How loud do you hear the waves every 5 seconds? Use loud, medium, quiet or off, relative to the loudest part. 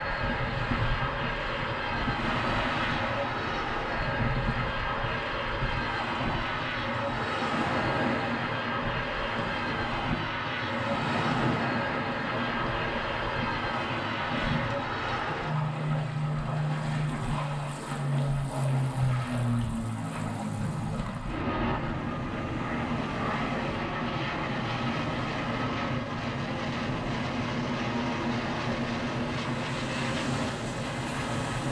loud, loud, loud, loud, medium, medium, medium.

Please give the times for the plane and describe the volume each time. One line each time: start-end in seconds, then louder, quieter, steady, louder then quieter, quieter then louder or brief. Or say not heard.
0.0-31.6 steady.